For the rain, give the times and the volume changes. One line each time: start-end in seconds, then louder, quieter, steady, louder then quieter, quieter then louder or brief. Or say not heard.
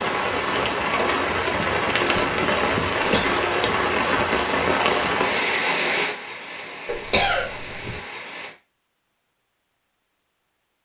0.0-8.6 quieter.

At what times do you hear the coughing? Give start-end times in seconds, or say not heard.
2.1-3.5, 6.8-8.0.